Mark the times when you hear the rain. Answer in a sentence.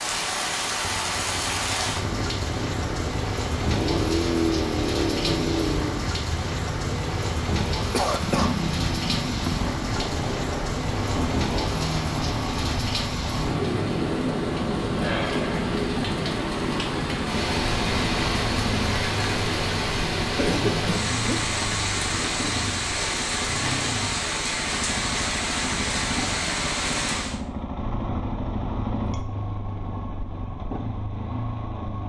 You can hear the rain from 0.0 to 27.4 s.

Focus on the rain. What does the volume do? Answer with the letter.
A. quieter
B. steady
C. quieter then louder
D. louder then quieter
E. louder
B.